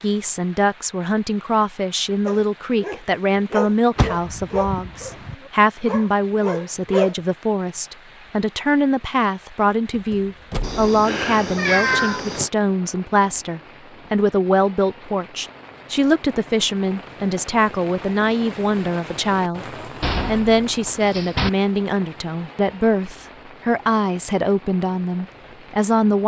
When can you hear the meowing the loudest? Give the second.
12 s.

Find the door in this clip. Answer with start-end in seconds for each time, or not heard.
4.0-5.3, 9.9-10.8, 20.0-21.5.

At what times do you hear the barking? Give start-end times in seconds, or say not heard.
2.2-7.2.